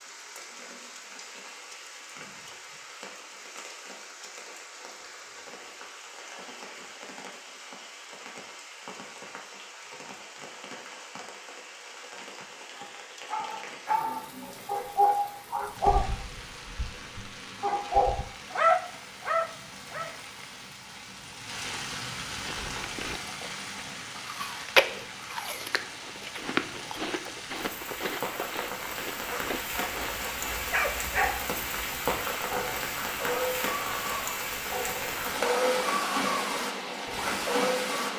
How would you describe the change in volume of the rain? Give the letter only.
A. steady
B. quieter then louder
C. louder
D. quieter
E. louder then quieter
C.